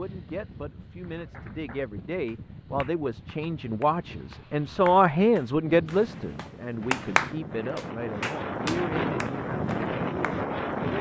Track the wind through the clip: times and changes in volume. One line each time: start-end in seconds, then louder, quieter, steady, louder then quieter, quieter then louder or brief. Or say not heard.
0.0-10.9 louder.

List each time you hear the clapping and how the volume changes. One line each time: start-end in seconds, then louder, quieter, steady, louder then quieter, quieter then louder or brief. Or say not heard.
1.1-10.4 louder then quieter.